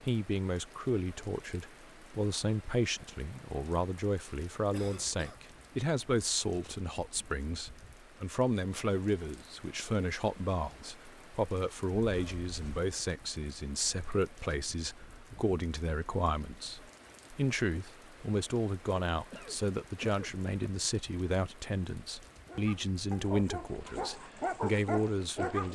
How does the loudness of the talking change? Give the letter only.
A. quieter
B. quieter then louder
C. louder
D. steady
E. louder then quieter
D.